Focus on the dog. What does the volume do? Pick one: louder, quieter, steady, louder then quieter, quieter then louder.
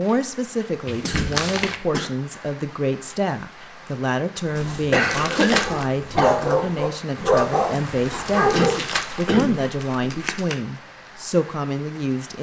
louder then quieter.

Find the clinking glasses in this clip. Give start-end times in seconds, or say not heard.
not heard.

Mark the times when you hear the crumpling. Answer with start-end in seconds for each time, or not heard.
0.8-1.8, 5.1-5.8, 8.5-10.6.